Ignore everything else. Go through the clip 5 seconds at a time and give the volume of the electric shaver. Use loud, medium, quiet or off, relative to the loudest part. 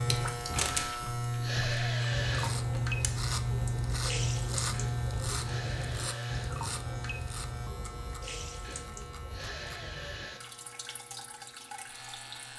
loud, medium, quiet.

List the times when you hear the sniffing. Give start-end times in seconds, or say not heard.
0.7-2.5, 4.7-6.5, 8.6-10.4.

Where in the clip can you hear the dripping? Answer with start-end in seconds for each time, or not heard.
0.0-12.5.